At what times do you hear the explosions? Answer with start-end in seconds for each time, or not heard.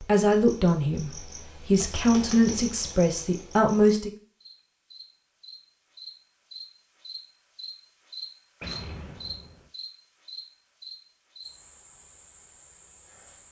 8.6-9.7.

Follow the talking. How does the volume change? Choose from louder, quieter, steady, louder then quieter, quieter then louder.
quieter then louder.